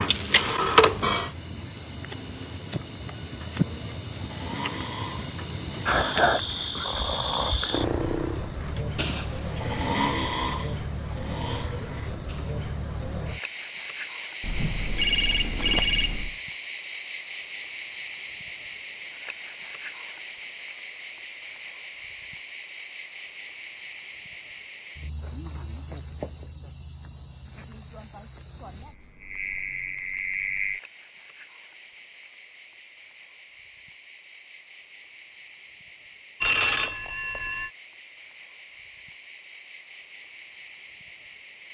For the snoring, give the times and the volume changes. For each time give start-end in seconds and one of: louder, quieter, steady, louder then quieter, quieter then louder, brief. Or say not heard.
4.2-12.6 louder then quieter.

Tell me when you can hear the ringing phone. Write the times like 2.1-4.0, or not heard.
0.1-1.4, 14.4-16.4, 36.4-37.7.